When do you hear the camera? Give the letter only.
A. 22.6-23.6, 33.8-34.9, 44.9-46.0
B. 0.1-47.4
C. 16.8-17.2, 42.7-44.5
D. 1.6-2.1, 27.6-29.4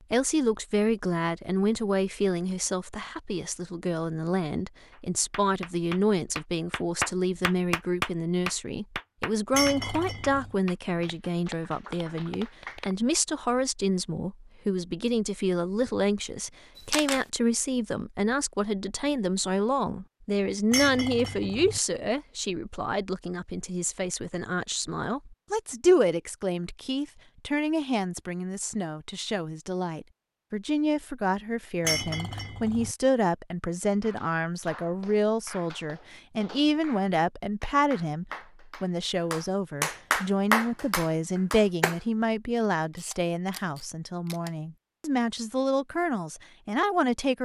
C.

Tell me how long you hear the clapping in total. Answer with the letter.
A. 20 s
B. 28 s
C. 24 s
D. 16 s
D.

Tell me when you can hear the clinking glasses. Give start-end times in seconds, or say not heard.
9.5-10.6, 20.7-21.8, 31.8-33.0.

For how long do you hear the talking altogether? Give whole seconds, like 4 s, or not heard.
47 s.